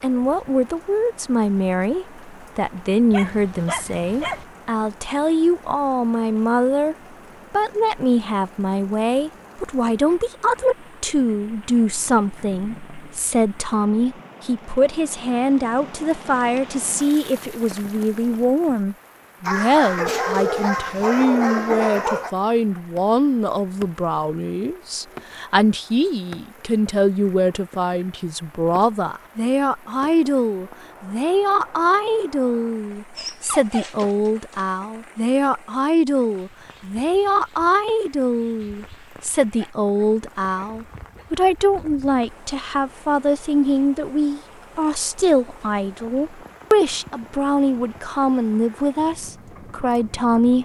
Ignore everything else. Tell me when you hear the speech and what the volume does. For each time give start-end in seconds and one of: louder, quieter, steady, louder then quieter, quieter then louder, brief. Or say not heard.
0.0-50.6 steady.